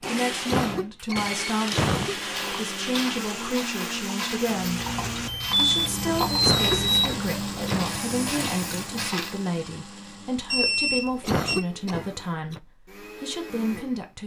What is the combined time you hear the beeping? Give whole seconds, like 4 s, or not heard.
5 s.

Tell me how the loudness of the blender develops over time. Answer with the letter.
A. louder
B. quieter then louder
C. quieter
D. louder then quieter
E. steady
C.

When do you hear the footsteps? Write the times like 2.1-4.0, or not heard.
2.1-9.5.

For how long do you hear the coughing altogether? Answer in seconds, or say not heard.
5 s.